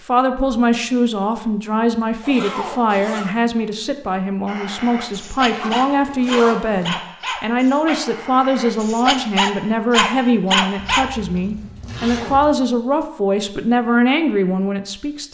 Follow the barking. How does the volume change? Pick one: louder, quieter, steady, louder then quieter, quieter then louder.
louder.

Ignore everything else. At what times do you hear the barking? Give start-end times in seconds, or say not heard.
4.5-11.1.